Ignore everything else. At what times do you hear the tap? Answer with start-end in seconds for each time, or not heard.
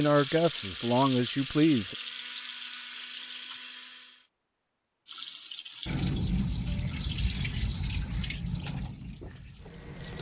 0.0-3.6, 5.0-10.1.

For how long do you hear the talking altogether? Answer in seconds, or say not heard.
2 s.